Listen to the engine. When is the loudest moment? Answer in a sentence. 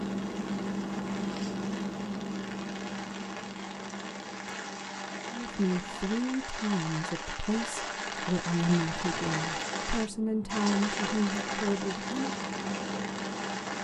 The loudest moment of the engine is at 1 second.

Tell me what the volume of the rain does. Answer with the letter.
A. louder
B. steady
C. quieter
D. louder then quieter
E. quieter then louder
A.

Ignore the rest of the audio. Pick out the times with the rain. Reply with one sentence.
You can hear the rain from 0.0 to 13.7 s.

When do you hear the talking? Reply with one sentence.
The talking can be heard from 5.4 to 12.3 s.